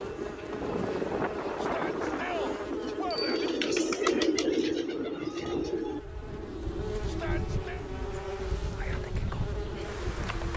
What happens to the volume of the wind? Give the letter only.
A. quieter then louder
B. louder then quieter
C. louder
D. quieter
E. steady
D.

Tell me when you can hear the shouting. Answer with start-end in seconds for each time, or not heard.
1.6-3.5, 7.0-7.8.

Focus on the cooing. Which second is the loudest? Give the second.
4 s.